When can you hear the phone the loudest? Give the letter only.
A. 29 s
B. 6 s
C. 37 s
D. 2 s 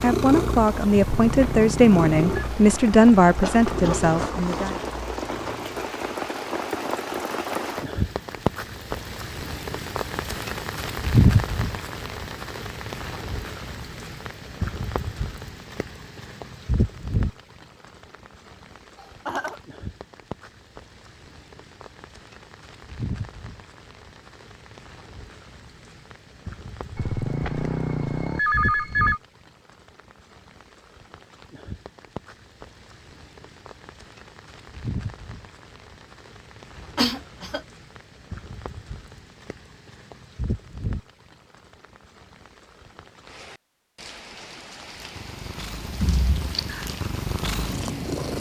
A.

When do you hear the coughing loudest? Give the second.
37 s.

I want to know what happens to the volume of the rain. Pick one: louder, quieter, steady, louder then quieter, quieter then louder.
quieter.